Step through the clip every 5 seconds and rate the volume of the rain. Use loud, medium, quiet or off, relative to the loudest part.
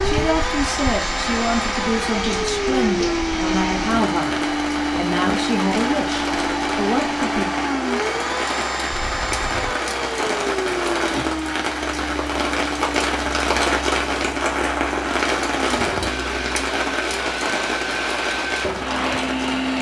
medium, medium, loud, loud.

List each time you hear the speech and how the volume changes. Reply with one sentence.
You can hear the speech from 0.0 to 7.5 s, at a steady volume.